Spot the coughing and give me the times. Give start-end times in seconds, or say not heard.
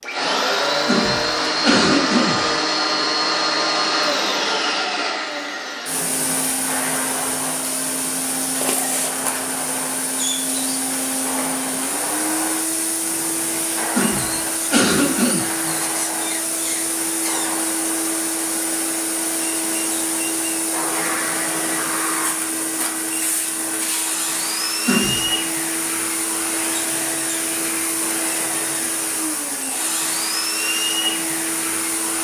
0.8-2.5, 13.9-15.5, 24.9-25.4.